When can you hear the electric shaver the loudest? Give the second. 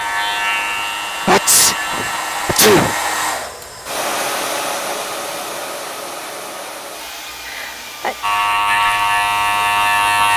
10 s.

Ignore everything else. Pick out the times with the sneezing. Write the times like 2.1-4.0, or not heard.
1.1-3.0, 7.5-8.2.